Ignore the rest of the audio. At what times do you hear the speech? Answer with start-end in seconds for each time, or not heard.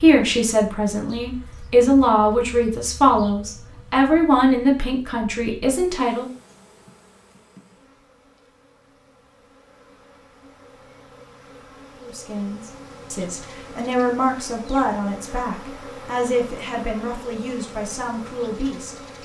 0.0-6.3, 12.0-19.1.